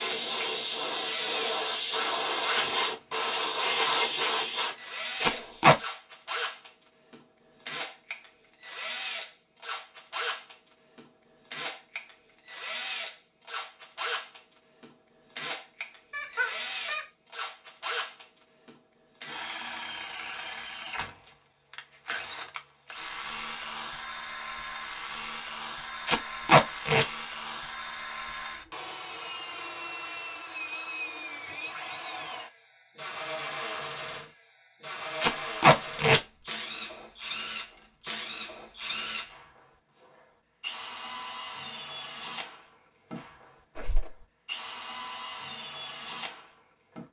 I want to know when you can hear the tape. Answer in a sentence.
The tape can be heard from 5.2 to 5.8 s, from 26.1 to 27.1 s and from 35.2 to 36.2 s.